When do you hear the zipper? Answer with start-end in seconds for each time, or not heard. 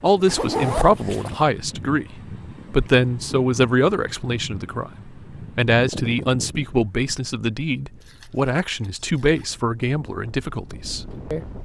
0.2-1.4, 8.0-9.5.